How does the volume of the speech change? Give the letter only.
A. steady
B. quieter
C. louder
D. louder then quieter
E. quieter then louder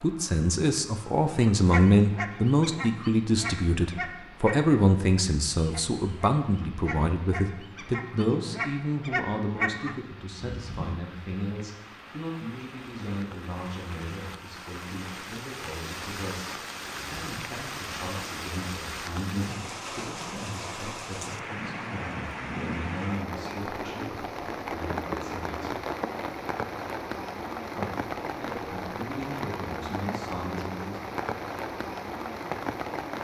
B.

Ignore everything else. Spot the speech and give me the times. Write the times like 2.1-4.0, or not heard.
0.0-25.8, 27.8-31.0.